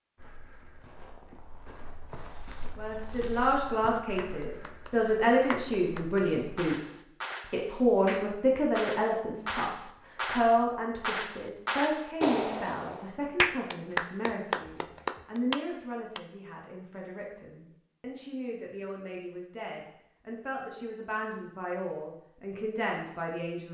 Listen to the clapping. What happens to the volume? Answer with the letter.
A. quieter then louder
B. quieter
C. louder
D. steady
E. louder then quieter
C.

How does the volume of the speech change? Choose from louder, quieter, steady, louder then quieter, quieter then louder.
quieter.